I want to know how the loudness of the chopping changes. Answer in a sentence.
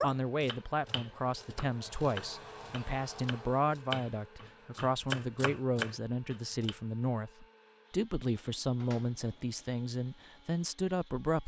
The volume of the chopping goes up.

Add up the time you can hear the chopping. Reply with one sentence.
The chopping can be heard for 7 seconds in total.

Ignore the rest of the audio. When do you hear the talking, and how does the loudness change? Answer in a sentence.
The talking can be heard from 0.0 to 11.4 s, at a steady volume.